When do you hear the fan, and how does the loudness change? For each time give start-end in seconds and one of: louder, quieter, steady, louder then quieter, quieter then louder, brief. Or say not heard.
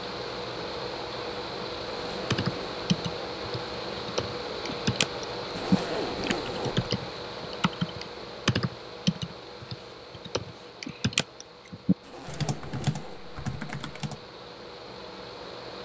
0.0-15.7 quieter.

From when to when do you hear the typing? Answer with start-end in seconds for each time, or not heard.
2.3-14.2.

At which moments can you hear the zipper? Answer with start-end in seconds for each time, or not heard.
1.9-2.8, 5.5-6.9, 12.0-13.2.